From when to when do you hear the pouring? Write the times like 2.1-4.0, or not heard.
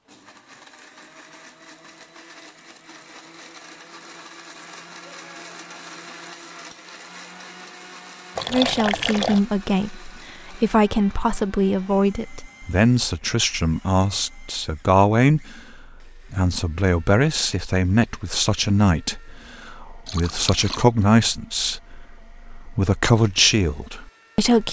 8.3-9.4, 20.1-20.9.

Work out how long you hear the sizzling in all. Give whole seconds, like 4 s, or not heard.
not heard.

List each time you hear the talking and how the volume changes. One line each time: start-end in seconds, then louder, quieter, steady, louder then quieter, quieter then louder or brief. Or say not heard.
8.5-24.6 steady.